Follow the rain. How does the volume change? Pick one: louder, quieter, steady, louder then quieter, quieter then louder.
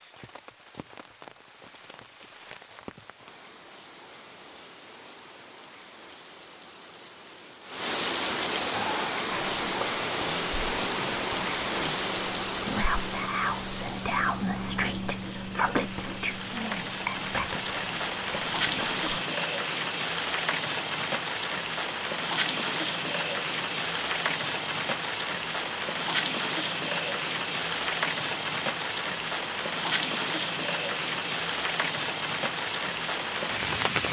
louder.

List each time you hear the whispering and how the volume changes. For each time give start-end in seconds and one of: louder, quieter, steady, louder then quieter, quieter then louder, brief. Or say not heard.
8.7-19.2 louder then quieter.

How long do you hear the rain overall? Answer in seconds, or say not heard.
34 s.